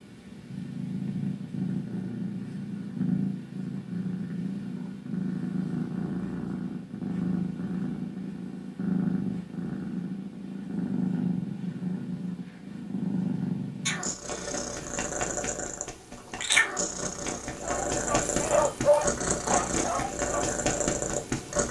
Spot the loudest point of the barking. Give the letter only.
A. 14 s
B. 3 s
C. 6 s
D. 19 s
D.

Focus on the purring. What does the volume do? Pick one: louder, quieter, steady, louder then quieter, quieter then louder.
steady.